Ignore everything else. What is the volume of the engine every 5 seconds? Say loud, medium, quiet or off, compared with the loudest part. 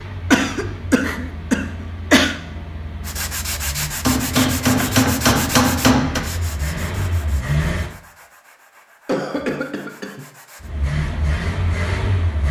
medium, loud, loud.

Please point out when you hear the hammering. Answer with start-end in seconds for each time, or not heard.
4.0-6.2.